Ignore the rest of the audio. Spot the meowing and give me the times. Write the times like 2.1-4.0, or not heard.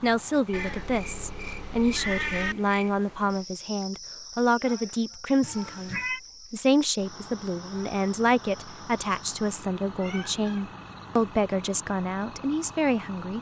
0.5-2.5, 5.4-6.2, 9.8-10.7.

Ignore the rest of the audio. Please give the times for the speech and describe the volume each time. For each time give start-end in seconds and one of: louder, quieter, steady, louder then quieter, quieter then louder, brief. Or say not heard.
0.0-13.3 steady.